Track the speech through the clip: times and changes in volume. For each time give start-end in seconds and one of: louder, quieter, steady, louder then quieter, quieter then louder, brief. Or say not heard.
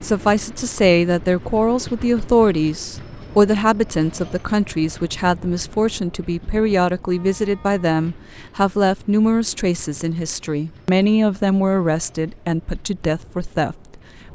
0.0-13.8 steady.